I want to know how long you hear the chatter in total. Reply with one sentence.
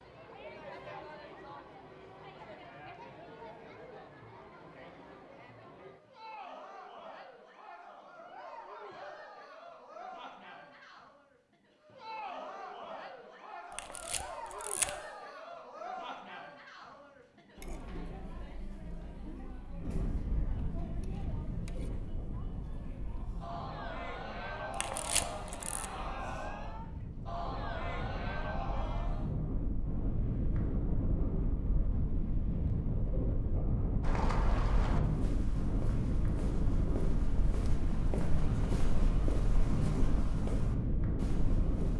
The chatter can be heard for 29 seconds in total.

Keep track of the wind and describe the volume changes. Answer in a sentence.
The volume of the wind goes up.